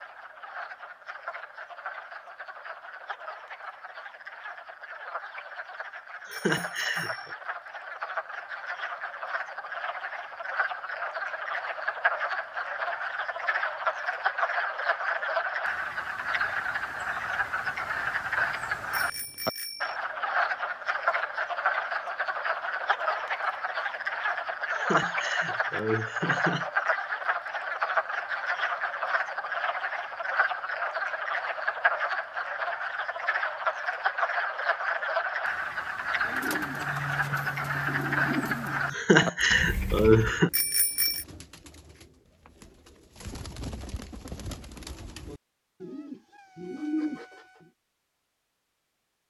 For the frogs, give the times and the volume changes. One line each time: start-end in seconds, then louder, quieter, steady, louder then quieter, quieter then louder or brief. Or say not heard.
0.0-40.4 louder.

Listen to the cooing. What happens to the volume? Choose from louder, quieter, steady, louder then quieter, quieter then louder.
quieter then louder.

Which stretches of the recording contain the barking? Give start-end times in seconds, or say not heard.
not heard.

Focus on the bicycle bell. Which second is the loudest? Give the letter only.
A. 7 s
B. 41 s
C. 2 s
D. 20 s
B.